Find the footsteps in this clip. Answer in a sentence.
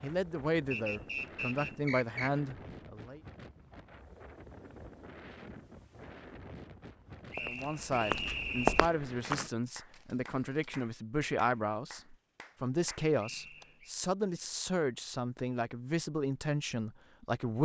You can hear the footsteps from 7.2 to 9.5 s.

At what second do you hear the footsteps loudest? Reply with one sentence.
The volume of the footsteps peaks at 9 seconds.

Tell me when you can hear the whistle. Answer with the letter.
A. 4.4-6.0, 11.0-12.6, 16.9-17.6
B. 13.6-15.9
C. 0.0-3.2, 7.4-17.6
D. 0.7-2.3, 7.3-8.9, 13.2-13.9
D.